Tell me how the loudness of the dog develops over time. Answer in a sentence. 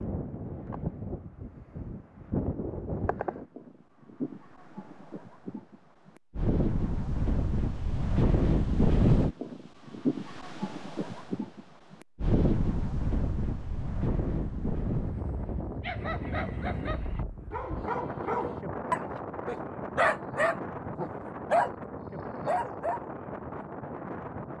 The loudness of the dog goes up.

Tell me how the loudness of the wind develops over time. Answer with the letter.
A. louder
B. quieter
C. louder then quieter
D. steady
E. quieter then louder
C.